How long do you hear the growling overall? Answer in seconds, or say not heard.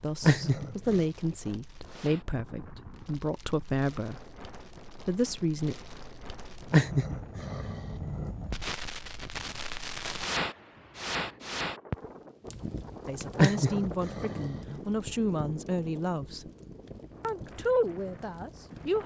4 s.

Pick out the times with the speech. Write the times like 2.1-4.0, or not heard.
0.0-4.3, 5.0-5.8, 13.1-16.5, 17.2-19.0.